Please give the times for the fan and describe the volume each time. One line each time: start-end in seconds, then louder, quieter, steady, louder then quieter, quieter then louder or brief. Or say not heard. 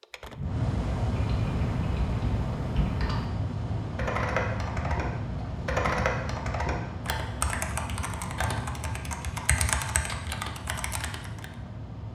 0.0-12.1 quieter.